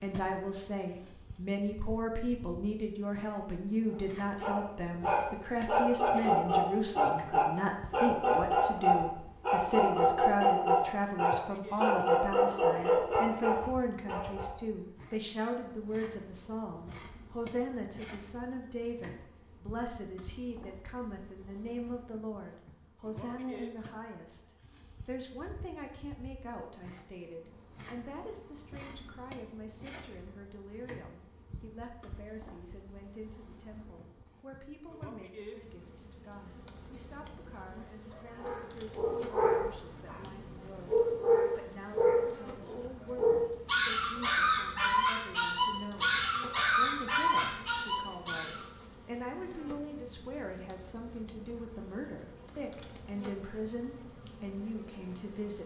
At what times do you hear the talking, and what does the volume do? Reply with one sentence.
You can hear the talking from 0.0 to 55.6 s, getting quieter then louder.